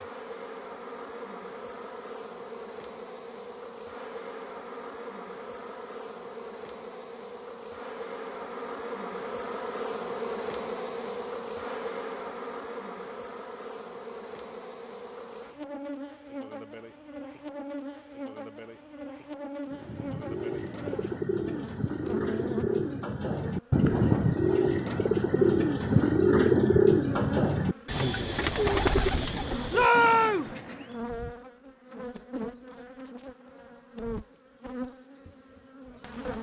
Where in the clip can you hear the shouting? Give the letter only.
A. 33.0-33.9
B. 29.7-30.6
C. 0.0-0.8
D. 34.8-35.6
B.